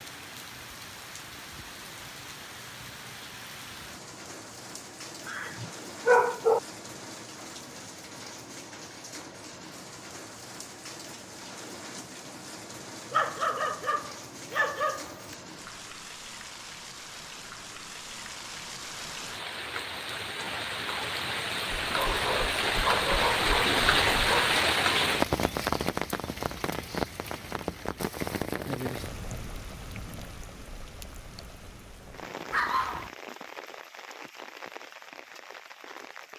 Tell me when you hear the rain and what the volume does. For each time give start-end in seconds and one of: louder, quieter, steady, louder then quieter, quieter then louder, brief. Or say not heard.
0.0-36.3 louder then quieter.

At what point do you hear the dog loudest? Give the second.
6 s.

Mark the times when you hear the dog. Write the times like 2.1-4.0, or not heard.
5.2-6.6, 13.1-15.3, 21.7-24.6, 32.5-33.1.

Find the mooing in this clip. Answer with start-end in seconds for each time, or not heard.
not heard.